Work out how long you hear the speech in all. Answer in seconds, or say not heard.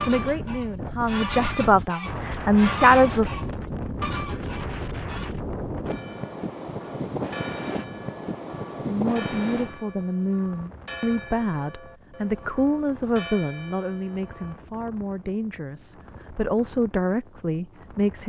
13 s.